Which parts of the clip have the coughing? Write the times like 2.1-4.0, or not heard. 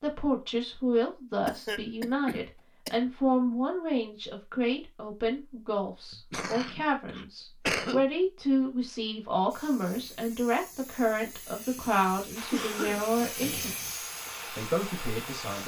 1.4-3.0, 6.1-8.1, 12.5-13.9.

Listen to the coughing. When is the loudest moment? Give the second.
8 s.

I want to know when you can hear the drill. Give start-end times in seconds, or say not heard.
12.3-15.6.